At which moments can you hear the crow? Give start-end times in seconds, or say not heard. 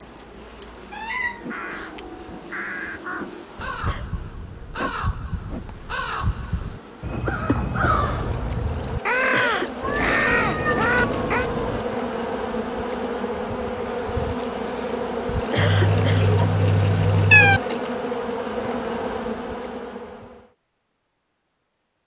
1.4-11.5.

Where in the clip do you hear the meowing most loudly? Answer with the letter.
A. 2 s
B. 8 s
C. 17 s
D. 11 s
C.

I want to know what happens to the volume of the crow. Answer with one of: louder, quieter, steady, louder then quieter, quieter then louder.
louder.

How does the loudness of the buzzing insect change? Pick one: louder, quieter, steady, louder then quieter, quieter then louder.
louder.